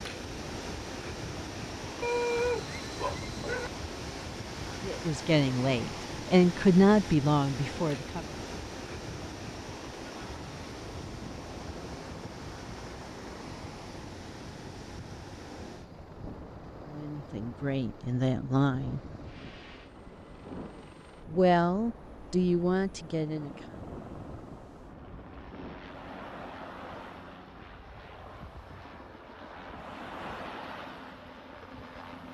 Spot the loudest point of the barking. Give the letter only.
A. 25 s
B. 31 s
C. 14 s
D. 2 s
D.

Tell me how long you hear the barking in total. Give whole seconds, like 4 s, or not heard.
2 s.